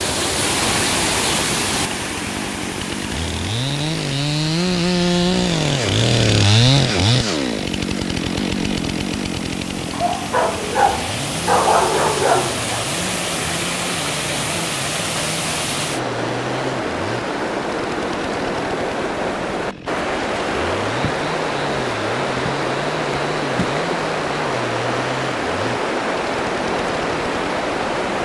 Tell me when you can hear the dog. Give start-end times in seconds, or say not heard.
9.9-12.8.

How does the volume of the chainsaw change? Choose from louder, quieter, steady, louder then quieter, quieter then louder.
quieter.